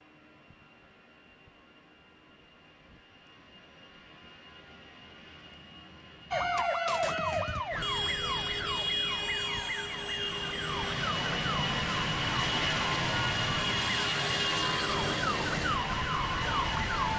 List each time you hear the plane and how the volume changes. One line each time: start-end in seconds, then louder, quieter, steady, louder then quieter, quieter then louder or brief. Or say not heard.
0.0-17.1 louder.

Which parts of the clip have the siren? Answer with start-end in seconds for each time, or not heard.
6.3-17.1.